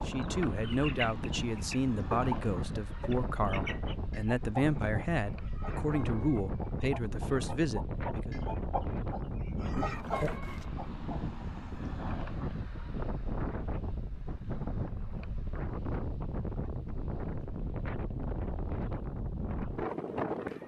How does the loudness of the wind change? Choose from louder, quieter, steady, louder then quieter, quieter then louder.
steady.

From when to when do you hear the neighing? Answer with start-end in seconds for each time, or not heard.
9.8-10.7.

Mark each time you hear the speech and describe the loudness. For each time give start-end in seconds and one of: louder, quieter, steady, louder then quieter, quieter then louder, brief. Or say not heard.
0.1-8.3 steady.